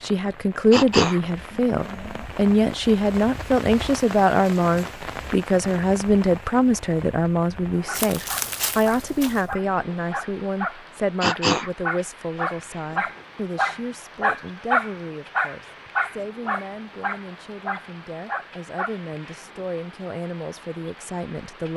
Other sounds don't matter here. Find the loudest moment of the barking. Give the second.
15 s.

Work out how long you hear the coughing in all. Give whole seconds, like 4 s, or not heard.
2 s.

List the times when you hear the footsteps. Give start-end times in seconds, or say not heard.
7.9-9.6.